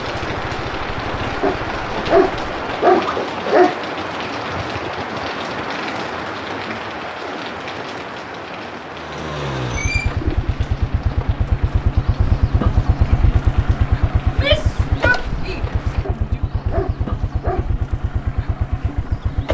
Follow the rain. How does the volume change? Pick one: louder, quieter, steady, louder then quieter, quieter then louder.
quieter.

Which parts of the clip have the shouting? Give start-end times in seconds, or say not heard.
14.2-16.4.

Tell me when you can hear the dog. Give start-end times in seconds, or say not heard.
1.4-3.8, 16.0-17.6.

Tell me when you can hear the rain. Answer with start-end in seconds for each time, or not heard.
0.0-16.1.